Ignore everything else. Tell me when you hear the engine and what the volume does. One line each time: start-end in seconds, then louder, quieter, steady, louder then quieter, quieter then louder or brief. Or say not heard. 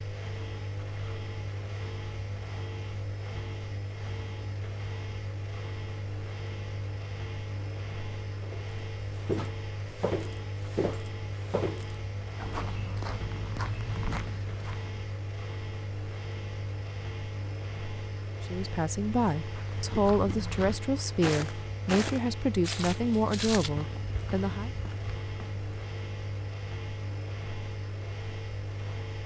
0.0-29.2 steady.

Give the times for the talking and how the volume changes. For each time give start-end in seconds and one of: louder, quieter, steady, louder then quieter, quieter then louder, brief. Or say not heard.
18.5-24.7 steady.